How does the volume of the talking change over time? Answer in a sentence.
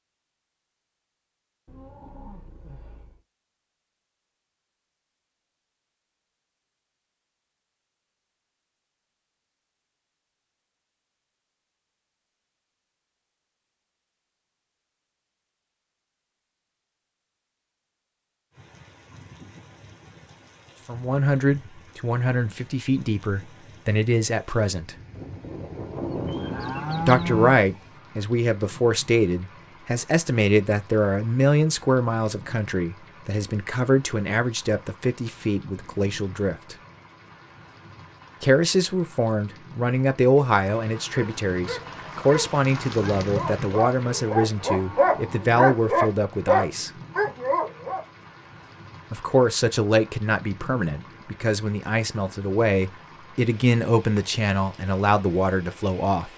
The volume of the talking stays about the same.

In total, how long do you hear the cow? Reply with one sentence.
You can hear the cow for 6 seconds altogether.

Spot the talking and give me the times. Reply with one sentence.
The talking can be heard from 20.9 to 24.9 s, from 27.1 to 36.8 s, from 38.4 to 46.9 s and from 49.1 to 56.3 s.